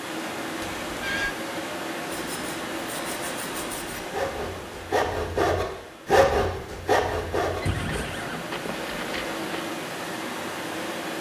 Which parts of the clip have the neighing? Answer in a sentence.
You can hear the neighing from 0.6 to 1.4 s and from 7.6 to 9.4 s.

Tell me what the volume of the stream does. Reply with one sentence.
The loudness of the stream goes down, then up.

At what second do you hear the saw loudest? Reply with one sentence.
The loudest moment of the saw is at 6 seconds.